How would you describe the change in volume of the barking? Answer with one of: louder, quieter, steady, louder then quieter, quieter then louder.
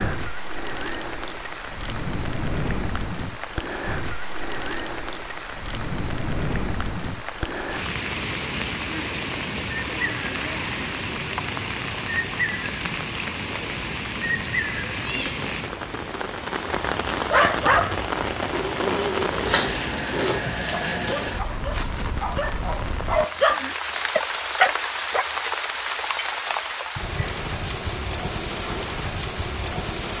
quieter then louder.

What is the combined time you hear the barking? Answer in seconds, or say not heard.
8 s.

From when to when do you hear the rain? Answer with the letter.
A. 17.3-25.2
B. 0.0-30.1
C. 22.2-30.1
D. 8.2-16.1
B.